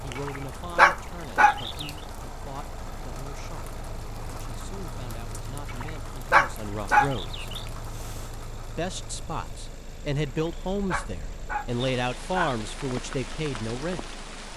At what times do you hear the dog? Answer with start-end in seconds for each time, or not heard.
0.1-1.9, 5.7-7.7, 10.2-12.6.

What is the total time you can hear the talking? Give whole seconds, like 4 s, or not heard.
13 s.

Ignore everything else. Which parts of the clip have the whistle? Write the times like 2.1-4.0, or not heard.
not heard.